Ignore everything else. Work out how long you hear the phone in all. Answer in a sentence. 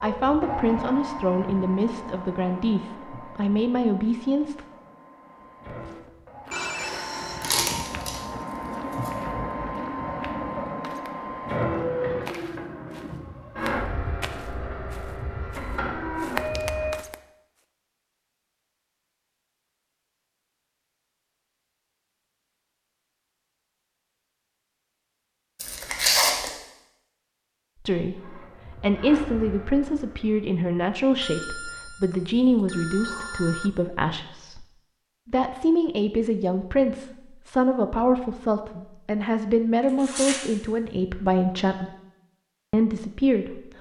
The phone can be heard for 4 seconds in total.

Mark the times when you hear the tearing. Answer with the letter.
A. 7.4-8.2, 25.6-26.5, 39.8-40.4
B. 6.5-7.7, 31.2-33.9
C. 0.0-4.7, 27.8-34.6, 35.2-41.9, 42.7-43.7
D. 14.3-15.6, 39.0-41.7
A.